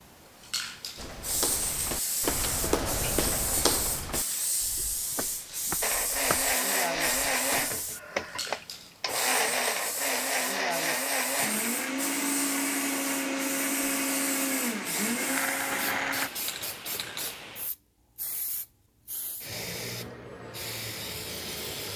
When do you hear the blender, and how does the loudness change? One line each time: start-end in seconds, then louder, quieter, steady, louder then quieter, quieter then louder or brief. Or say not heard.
5.8-16.3 steady.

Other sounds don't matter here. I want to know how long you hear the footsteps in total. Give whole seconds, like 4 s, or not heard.
7 s.